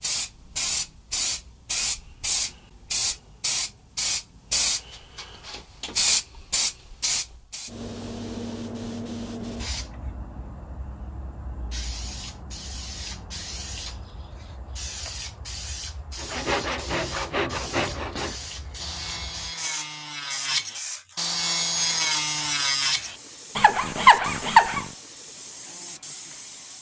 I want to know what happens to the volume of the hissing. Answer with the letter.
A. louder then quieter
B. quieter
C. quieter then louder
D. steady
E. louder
B.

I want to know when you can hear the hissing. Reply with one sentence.
You can hear the hissing from 0.0 to 26.7 s.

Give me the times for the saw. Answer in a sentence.
The saw can be heard from 16.1 to 24.9 s.